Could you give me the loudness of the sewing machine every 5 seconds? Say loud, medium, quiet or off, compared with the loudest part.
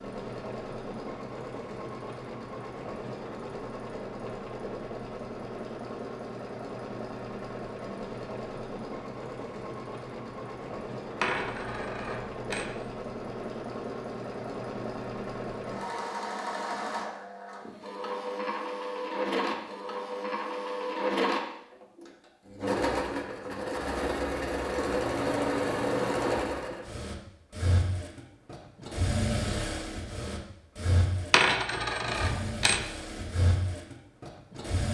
medium, medium, medium, loud, loud, loud, medium.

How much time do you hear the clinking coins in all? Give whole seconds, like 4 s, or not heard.
3 s.